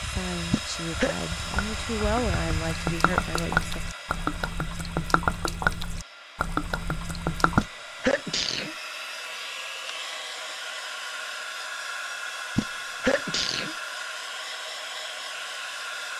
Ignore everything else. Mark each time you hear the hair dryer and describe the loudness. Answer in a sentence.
The hair dryer can be heard from 0.0 to 16.1 s, getting quieter then louder.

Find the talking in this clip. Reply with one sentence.
You can hear the talking from 0.0 to 3.8 s.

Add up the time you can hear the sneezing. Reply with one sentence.
The sneezing can be heard for 3 seconds in total.